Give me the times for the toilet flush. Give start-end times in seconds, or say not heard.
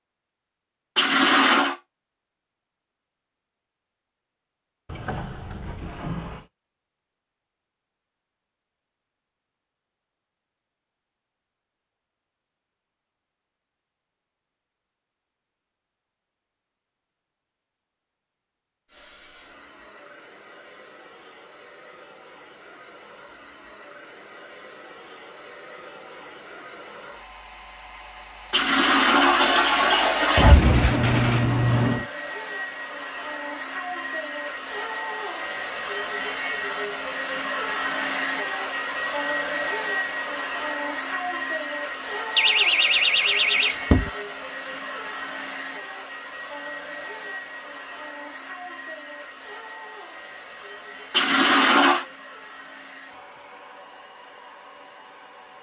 0.9-1.8, 28.5-30.6, 51.1-52.0.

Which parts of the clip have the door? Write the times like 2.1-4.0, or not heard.
4.8-6.5, 30.4-32.0, 42.4-44.1.